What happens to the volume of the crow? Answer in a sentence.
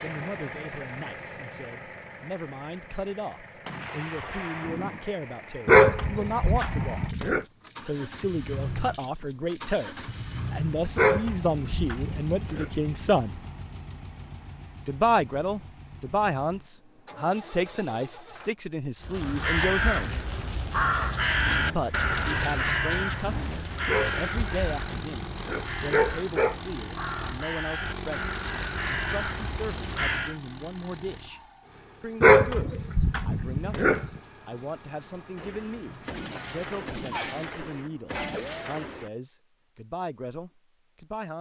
The loudness of the crow goes down.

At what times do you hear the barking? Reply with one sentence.
The barking can be heard from 5.7 to 7.4 s, from 10.9 to 12.7 s, from 23.9 to 26.6 s and from 32.2 to 34.1 s.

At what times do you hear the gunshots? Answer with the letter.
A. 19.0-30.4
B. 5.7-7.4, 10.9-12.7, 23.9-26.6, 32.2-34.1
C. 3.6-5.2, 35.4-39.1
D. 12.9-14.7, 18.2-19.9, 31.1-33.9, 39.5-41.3
C.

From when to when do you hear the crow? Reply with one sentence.
You can hear the crow from 19.0 to 30.4 s.